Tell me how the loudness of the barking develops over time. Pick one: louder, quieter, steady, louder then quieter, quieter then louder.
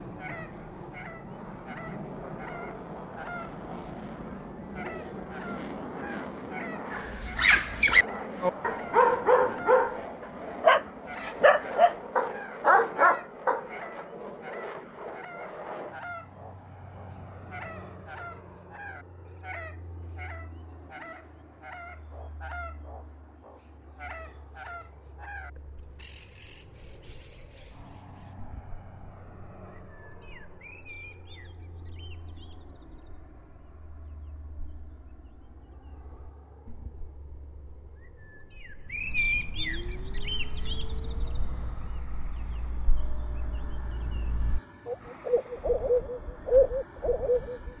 steady.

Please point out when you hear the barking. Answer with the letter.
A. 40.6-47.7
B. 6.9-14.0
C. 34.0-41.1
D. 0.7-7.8
B.